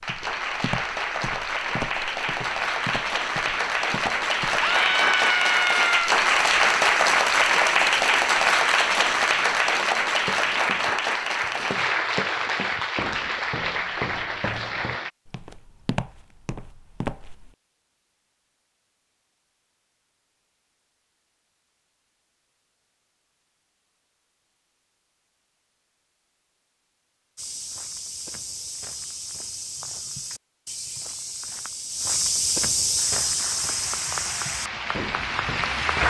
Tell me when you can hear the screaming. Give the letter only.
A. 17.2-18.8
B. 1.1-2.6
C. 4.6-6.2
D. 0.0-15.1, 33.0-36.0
C.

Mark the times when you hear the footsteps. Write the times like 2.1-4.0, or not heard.
0.0-4.7, 10.2-17.5, 27.4-36.0.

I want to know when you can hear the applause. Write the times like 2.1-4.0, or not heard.
0.0-15.1, 33.0-36.0.